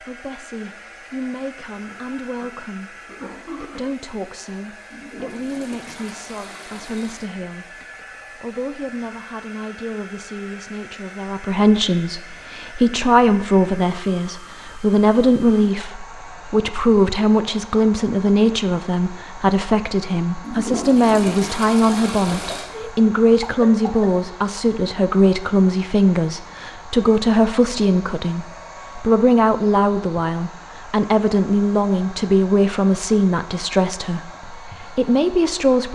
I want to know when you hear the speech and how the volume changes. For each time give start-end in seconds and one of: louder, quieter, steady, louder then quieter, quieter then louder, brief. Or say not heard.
0.0-35.8 louder.